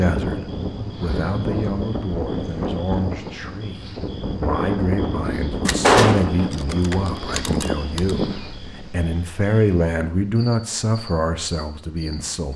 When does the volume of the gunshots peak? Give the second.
6 s.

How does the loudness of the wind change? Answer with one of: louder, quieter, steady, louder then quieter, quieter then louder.
quieter.